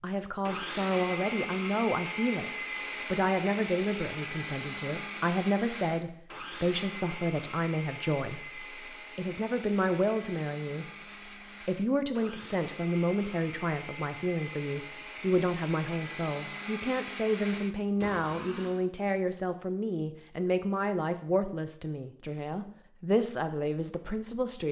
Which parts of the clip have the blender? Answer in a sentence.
You can hear the blender from 0.4 to 18.9 s.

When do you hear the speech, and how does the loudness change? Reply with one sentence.
The speech can be heard from 0.0 to 10.8 s, at a steady volume; and from 11.7 to 24.6 s, at a steady volume.